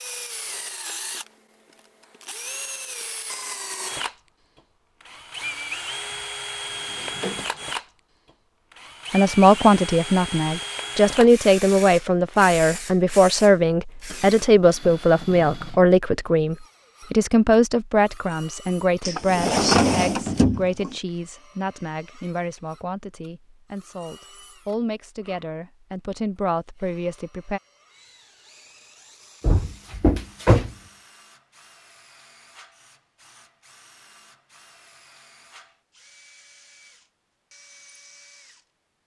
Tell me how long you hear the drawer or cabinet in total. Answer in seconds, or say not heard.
5 s.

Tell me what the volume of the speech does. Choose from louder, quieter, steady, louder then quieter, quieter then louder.
quieter.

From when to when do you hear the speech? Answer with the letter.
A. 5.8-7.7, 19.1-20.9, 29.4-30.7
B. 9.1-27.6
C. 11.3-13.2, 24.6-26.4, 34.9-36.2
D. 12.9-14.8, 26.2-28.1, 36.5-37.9
B.